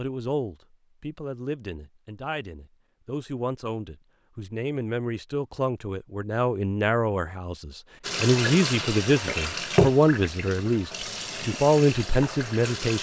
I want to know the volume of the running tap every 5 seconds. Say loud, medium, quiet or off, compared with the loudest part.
off, loud, medium.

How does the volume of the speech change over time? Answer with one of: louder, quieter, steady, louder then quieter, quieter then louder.
louder.